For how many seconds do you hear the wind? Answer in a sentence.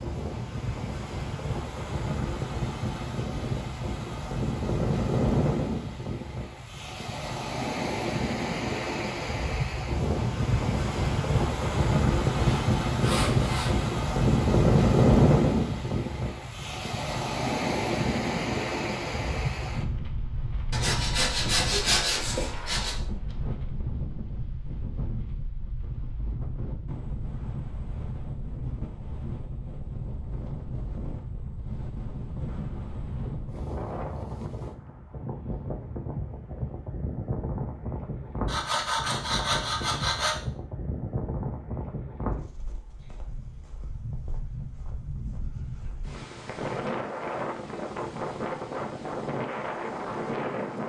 The wind can be heard for 51 seconds in total.